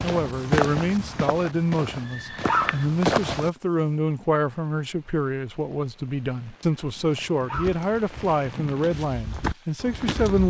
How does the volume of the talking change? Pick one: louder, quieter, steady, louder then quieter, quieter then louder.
steady.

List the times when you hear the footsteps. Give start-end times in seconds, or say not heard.
0.0-3.5, 7.1-10.4.